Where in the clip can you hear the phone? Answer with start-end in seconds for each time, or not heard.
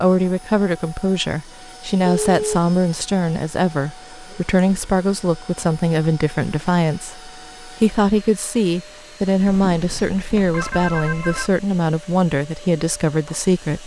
2.0-2.6, 9.4-11.5.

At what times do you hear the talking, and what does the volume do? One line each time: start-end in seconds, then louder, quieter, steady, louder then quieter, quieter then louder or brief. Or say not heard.
0.0-13.8 steady.